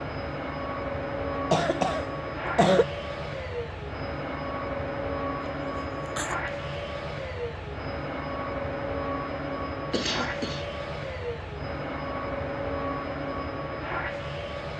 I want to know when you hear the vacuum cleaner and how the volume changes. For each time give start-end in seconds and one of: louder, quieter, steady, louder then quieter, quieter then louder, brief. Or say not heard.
0.0-14.7 steady.